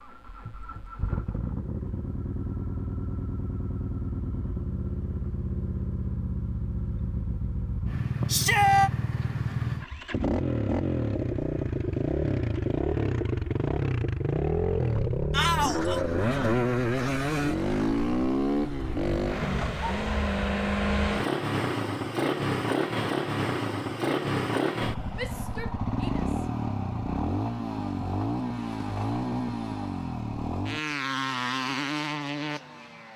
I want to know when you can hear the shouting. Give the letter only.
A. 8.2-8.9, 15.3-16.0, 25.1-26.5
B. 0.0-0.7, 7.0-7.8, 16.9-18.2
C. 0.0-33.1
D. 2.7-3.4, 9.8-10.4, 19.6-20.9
A.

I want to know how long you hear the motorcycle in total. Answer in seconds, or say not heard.
33 s.